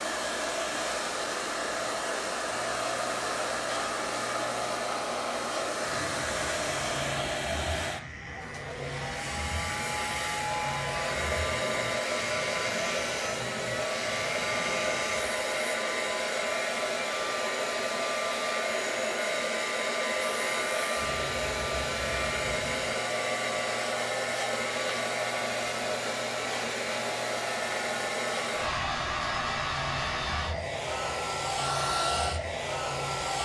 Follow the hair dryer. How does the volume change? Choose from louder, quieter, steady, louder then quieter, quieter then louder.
steady.